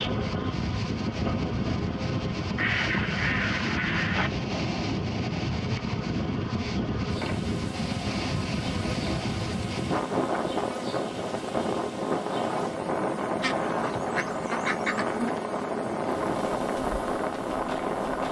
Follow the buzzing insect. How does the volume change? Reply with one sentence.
The loudness of the buzzing insect stays about the same.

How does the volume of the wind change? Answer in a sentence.
The loudness of the wind stays about the same.